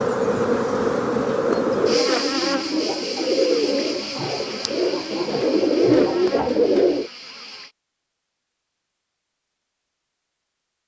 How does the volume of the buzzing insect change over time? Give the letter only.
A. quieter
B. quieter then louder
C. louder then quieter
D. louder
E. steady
A.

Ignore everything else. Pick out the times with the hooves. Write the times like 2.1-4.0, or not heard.
not heard.